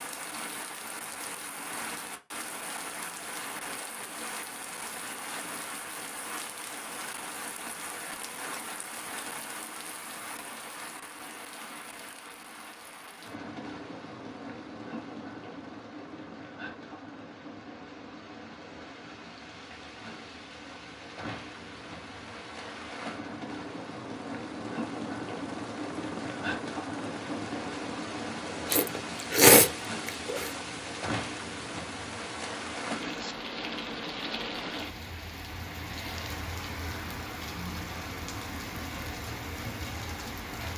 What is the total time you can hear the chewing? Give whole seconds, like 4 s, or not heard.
2 s.